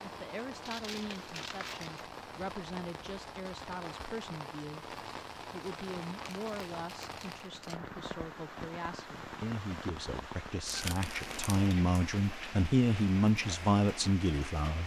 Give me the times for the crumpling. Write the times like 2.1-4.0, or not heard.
0.6-2.1, 6.1-7.8, 10.7-11.7.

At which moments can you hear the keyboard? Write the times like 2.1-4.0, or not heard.
not heard.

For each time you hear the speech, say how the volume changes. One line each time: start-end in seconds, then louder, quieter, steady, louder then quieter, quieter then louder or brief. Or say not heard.
0.0-14.8 louder.